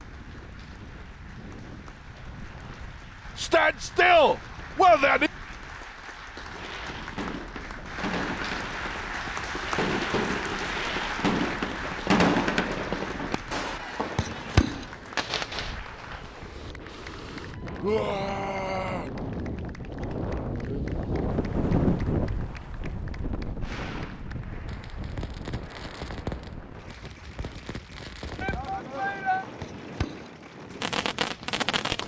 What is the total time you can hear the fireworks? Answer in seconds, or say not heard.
18 s.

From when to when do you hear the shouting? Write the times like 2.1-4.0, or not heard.
3.4-5.3, 17.8-19.1, 28.4-29.4.